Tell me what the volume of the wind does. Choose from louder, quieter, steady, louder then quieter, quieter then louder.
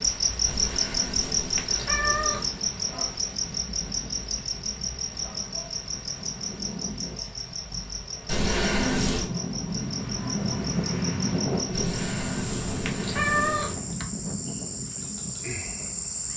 louder then quieter.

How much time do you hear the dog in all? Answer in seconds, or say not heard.
not heard.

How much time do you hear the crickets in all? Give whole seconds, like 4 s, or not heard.
16 s.